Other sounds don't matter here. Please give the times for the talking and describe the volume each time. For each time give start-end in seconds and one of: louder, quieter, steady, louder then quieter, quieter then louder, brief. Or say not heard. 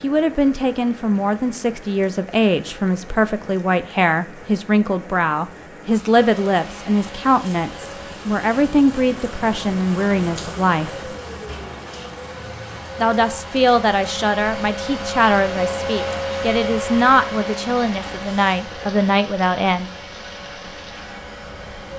0.0-11.1 steady
13.0-19.9 steady.